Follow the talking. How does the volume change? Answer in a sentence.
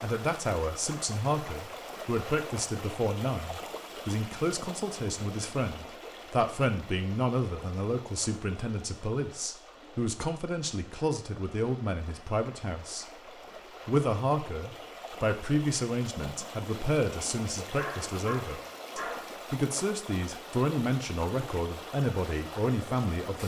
The loudness of the talking stays about the same.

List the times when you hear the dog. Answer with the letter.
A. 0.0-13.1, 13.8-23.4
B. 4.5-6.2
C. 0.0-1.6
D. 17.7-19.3
D.